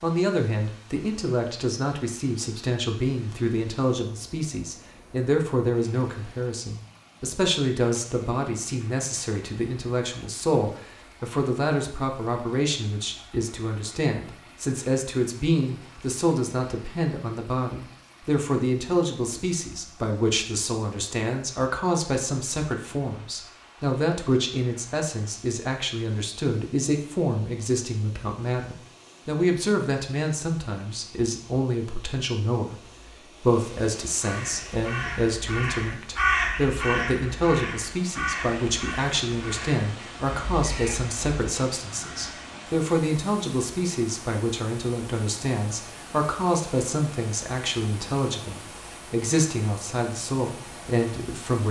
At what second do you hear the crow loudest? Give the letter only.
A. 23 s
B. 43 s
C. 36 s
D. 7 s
C.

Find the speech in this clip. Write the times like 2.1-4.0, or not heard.
0.0-51.6.